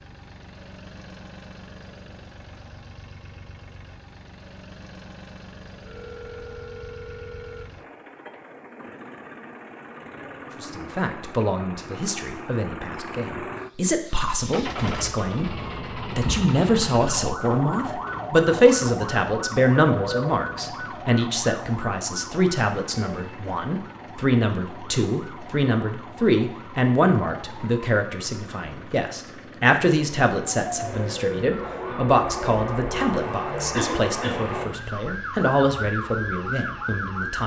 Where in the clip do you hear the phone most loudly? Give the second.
20 s.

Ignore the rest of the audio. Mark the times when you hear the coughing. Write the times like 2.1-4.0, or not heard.
33.7-34.4.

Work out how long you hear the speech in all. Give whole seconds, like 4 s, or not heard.
27 s.